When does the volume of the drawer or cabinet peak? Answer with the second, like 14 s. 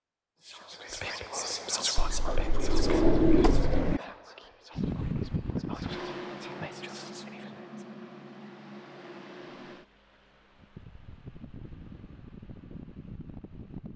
3 s.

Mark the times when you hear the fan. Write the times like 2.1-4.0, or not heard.
4.8-13.9.